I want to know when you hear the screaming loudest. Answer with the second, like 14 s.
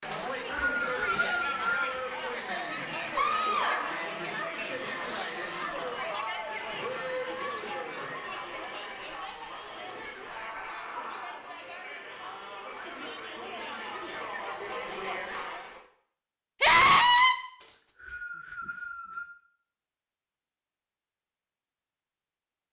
17 s.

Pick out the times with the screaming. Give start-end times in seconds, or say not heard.
3.1-4.0, 10.3-11.4, 16.6-17.4.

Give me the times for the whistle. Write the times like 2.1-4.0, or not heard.
0.1-2.0, 17.6-19.3.